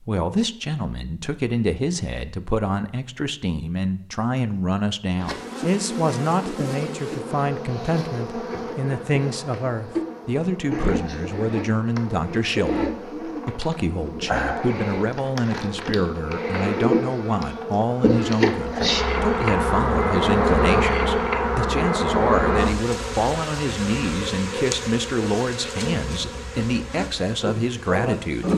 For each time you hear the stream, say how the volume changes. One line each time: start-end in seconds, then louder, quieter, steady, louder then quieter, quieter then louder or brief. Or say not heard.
not heard.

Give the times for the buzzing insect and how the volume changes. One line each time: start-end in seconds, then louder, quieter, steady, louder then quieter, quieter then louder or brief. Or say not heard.
5.2-28.5 louder then quieter.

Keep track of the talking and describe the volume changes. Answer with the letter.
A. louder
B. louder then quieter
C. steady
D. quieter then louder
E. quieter
C.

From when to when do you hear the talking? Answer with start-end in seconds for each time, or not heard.
0.0-28.5.